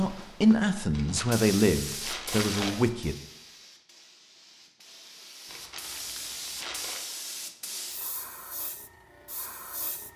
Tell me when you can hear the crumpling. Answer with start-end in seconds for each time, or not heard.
0.9-2.8, 5.5-7.0.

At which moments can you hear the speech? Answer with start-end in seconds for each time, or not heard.
0.0-3.1.